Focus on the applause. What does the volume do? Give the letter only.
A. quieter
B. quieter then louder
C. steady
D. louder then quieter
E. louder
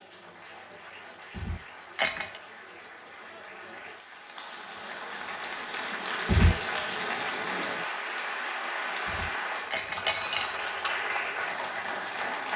E.